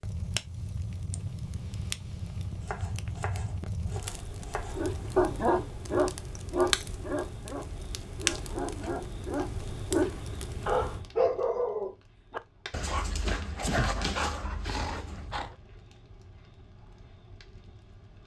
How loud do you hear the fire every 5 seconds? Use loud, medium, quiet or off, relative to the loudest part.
loud, loud, medium, quiet.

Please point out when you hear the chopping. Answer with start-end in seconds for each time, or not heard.
2.6-4.8.